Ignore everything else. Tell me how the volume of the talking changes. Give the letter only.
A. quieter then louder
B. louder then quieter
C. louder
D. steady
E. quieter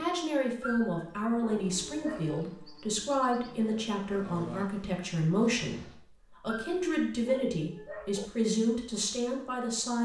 D.